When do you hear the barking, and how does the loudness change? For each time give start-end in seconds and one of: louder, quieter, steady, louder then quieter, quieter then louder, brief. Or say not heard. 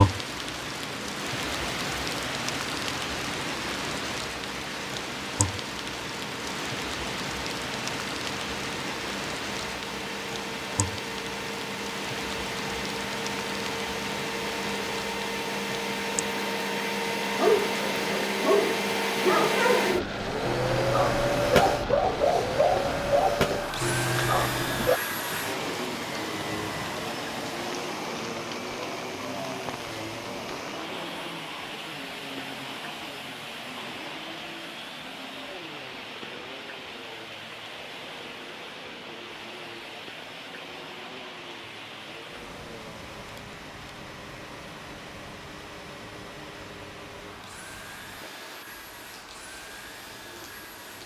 17.4-25.0 steady.